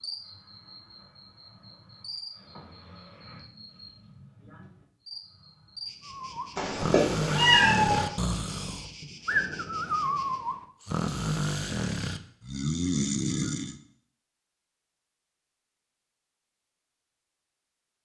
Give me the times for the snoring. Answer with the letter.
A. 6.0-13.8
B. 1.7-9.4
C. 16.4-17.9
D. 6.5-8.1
A.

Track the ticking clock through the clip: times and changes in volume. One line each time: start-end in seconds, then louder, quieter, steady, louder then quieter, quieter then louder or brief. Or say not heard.
not heard.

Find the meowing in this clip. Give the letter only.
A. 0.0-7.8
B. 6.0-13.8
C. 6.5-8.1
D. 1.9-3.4
C.